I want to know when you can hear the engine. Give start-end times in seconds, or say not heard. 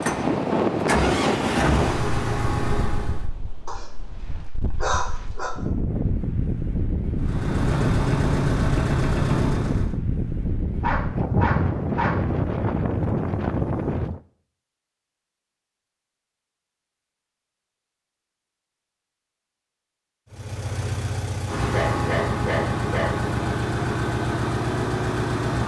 0.0-3.3, 7.2-9.9, 20.3-25.6.